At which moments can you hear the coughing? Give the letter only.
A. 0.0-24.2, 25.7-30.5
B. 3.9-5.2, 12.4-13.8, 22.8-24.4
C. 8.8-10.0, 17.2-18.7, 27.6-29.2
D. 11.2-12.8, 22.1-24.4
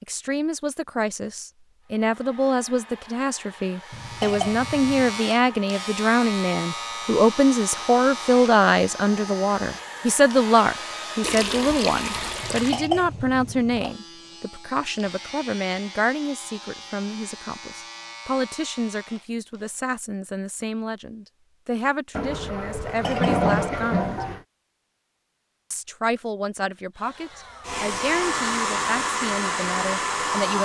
B.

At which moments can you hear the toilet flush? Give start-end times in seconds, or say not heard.
11.2-12.8, 22.1-24.4.